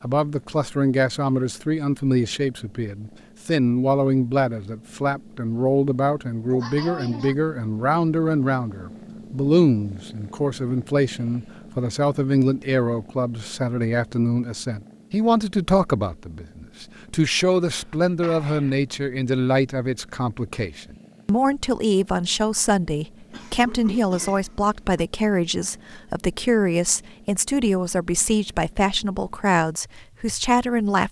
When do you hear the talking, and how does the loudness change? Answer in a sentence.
You can hear the talking from 0.0 to 31.0 s, at a steady volume.